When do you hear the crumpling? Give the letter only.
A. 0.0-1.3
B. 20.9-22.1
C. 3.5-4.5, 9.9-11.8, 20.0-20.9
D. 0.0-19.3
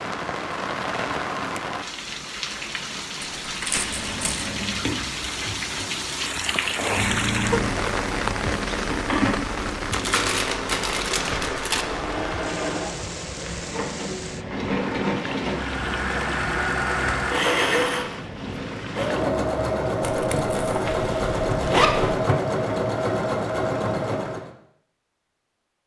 C.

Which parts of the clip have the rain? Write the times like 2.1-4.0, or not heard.
0.0-19.3.